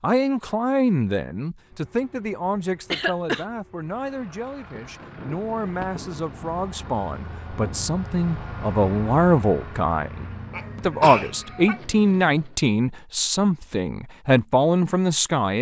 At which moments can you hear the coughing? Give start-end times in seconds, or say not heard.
2.9-3.5, 10.5-11.8.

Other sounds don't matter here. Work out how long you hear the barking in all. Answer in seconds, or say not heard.
not heard.